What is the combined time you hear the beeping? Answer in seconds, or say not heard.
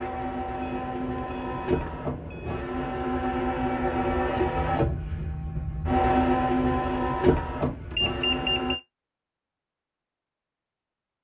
3 s.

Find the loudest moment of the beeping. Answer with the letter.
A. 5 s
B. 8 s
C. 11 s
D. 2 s
B.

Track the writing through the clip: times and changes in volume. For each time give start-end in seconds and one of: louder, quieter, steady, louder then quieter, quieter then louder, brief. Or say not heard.
not heard.